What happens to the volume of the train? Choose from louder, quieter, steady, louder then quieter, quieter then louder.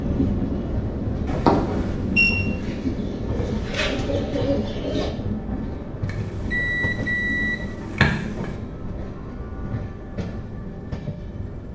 quieter.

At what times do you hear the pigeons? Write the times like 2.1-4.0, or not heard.
2.3-5.1.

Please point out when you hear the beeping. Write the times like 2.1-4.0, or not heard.
1.2-2.3, 6.0-8.6.